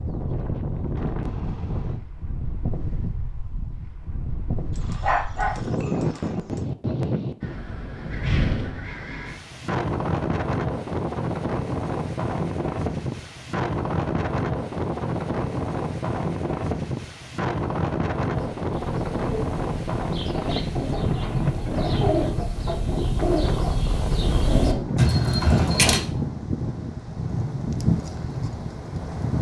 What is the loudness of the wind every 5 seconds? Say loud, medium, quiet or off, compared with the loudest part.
medium, loud, loud, loud, loud, loud.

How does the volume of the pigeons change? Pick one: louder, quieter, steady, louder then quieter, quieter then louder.
louder.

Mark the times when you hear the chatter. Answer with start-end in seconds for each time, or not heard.
not heard.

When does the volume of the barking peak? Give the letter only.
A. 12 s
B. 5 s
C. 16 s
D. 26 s
B.